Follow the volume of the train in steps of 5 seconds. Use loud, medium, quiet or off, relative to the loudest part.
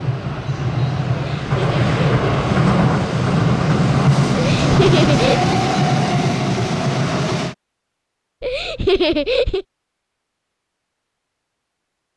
loud, loud, off.